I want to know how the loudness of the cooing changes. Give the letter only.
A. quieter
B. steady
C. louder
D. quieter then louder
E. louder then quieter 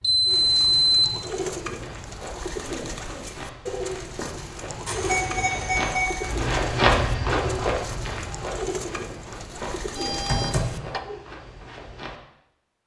B.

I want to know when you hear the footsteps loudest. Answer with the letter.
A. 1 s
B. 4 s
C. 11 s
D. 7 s
D.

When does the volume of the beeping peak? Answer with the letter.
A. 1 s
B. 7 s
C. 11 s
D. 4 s
A.